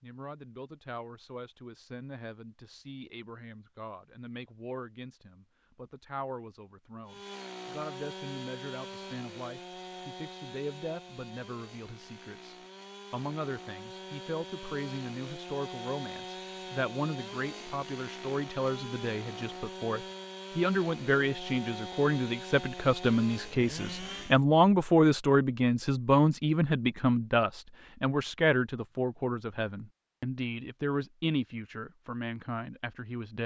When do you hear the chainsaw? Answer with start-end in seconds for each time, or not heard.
7.0-24.4.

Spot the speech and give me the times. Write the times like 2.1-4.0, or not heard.
0.0-33.4.